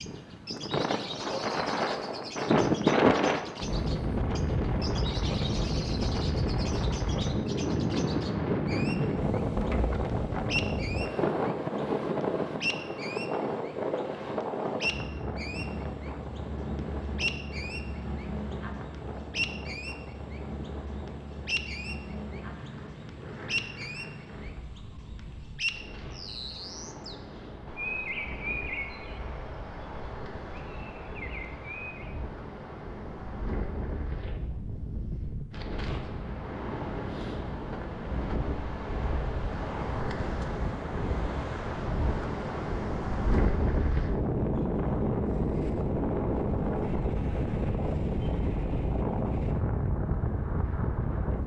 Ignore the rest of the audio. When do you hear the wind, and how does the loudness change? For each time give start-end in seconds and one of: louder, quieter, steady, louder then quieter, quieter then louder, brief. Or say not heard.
0.0-51.4 quieter then louder.